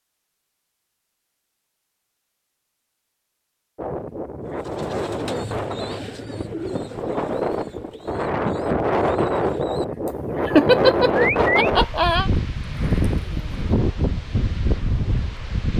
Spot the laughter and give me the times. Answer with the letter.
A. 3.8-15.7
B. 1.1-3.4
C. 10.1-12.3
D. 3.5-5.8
C.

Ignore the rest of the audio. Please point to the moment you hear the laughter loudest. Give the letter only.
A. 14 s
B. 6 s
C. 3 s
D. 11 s
D.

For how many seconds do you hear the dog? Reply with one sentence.
You can't hear the dog here.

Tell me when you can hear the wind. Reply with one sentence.
The wind can be heard from 3.8 to 15.7 s.